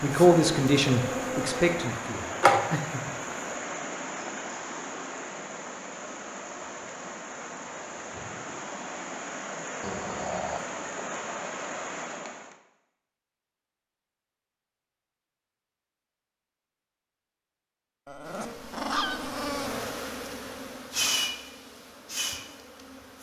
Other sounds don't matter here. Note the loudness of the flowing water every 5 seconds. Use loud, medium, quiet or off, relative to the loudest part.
loud, loud, loud, off, off.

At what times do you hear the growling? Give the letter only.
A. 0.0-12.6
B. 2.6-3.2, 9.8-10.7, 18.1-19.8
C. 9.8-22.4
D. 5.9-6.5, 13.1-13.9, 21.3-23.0
B.